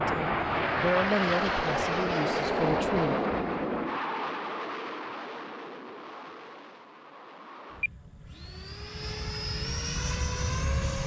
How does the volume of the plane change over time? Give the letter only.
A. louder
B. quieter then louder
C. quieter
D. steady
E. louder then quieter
B.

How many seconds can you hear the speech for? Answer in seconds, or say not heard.
3 s.